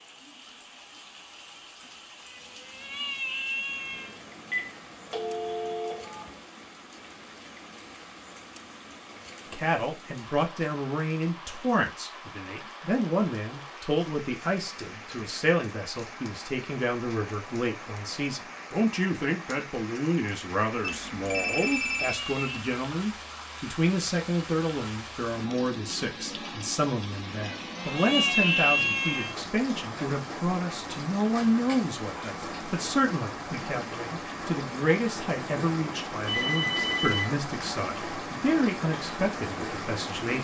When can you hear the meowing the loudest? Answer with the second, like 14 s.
29 s.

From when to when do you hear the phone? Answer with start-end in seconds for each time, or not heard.
3.9-6.3, 20.8-22.1, 36.2-37.4.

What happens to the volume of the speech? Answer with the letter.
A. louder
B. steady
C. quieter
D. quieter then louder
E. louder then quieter
B.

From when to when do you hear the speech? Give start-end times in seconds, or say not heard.
9.5-40.3.